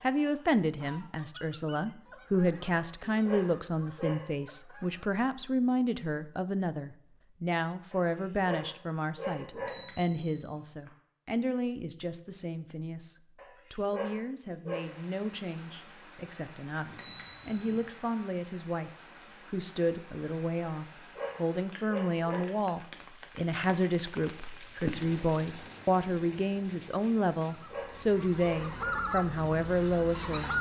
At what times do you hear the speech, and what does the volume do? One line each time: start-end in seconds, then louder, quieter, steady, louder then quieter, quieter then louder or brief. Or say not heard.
0.0-30.5 quieter then louder.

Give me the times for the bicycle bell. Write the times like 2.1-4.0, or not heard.
9.4-10.9, 16.8-17.8.